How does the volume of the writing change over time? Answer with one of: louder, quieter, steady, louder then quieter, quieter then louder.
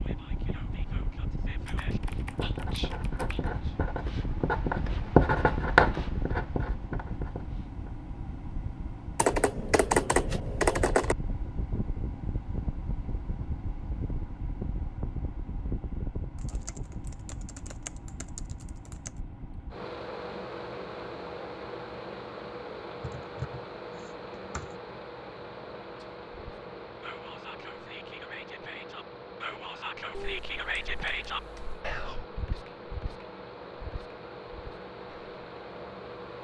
louder then quieter.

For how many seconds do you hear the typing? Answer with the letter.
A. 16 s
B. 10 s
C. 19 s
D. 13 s
B.